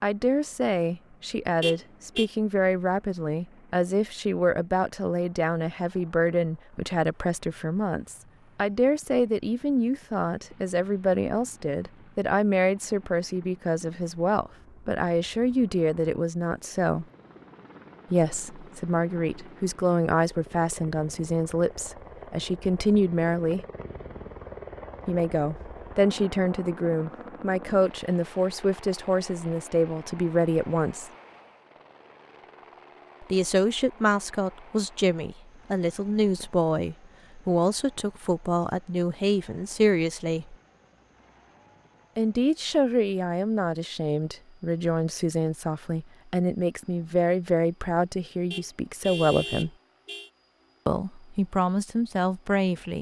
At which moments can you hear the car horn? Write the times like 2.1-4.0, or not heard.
1.6-2.3, 48.5-50.3.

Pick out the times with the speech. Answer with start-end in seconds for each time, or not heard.
0.0-17.1, 18.1-23.6, 25.1-31.1, 33.2-40.5, 42.1-49.7, 50.9-52.9.